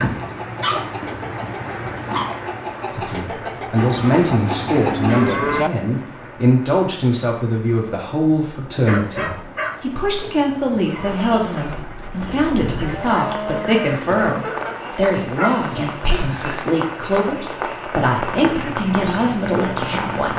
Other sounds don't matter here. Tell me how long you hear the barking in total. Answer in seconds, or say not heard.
5 s.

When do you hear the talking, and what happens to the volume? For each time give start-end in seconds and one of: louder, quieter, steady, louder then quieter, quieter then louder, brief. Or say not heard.
2.9-20.3 steady.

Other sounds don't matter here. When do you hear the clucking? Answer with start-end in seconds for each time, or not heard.
0.0-5.2, 10.8-15.2.